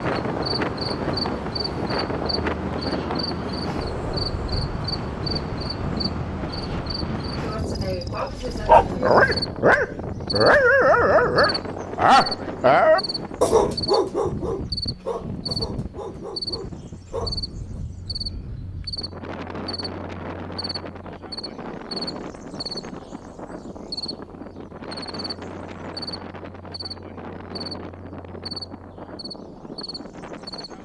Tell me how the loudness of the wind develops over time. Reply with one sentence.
The volume of the wind goes down.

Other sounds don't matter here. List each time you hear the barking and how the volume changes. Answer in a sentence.
You can hear the barking from 8.2 to 17.8 s, getting quieter.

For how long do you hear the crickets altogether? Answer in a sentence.
The crickets can be heard for 31 seconds in total.